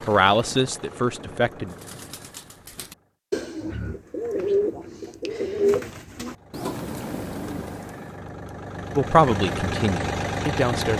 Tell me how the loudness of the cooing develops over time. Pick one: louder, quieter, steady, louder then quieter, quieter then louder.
louder then quieter.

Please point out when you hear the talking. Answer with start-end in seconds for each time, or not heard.
0.1-1.8, 8.9-10.9.